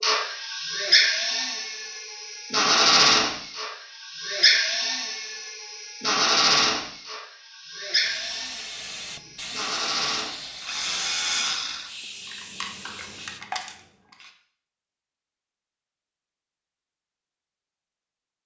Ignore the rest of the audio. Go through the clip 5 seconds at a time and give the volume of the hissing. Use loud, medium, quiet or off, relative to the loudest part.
off, loud, loud, off.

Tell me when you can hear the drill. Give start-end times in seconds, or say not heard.
0.0-13.8.